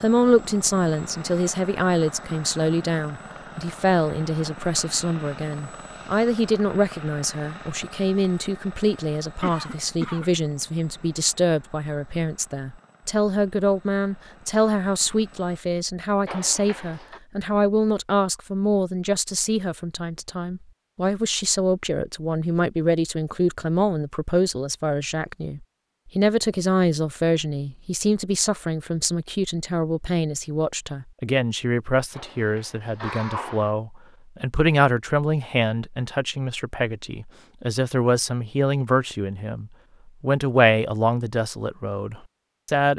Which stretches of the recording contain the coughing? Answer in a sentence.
You can hear the coughing from 9.4 to 10.3 s, from 16.2 to 17.2 s and from 32.1 to 33.7 s.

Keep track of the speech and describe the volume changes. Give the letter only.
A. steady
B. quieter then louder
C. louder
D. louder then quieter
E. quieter
A.